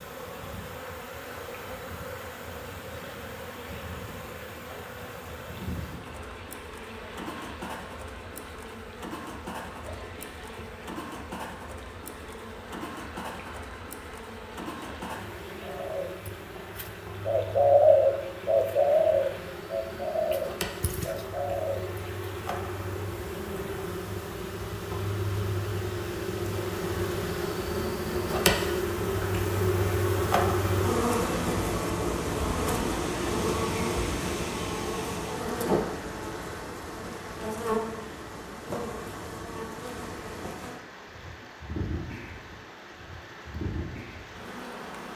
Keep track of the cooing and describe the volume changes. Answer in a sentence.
The volume of the cooing goes up, then down.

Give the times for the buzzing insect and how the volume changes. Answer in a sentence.
The buzzing insect can be heard from 0.0 to 45.1 s, getting louder then quieter.